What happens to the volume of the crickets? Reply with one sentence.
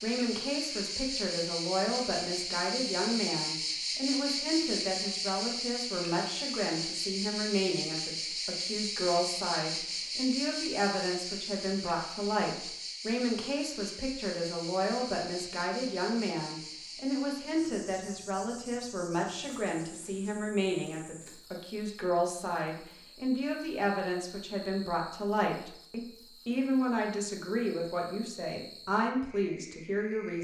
The loudness of the crickets goes down.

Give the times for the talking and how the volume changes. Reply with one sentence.
You can hear the talking from 0.0 to 30.3 s, at a steady volume.